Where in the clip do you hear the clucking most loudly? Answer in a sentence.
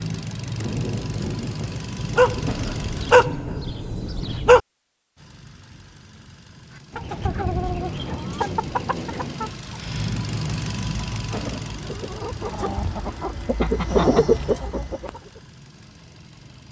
The volume of the clucking peaks at 14 seconds.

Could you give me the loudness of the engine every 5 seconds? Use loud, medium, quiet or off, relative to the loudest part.
loud, medium, loud, quiet.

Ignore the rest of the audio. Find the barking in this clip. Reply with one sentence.
The barking can be heard from 2.1 to 4.6 s.